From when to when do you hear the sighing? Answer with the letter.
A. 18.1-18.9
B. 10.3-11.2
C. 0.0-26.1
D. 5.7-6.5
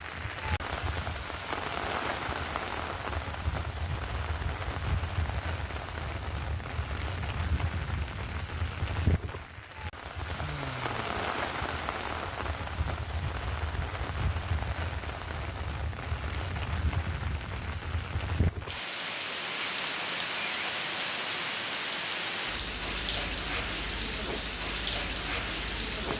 B.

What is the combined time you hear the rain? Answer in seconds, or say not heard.
26 s.